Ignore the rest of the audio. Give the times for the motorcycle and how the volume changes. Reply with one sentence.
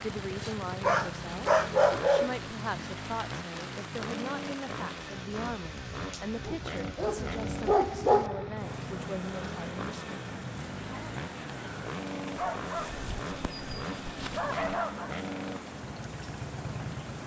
The motorcycle can be heard from 0.0 to 17.2 s, at a steady volume.